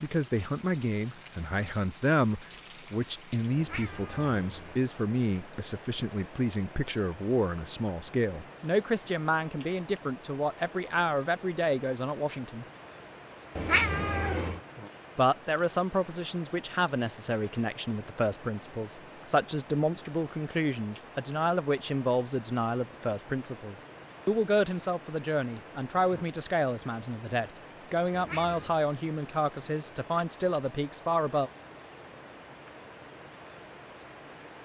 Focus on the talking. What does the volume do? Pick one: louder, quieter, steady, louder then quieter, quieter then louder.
steady.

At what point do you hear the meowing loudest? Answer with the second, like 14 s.
14 s.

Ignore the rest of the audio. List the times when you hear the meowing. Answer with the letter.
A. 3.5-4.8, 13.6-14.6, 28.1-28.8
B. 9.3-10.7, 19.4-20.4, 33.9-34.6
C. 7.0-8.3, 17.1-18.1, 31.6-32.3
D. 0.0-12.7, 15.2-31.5
A.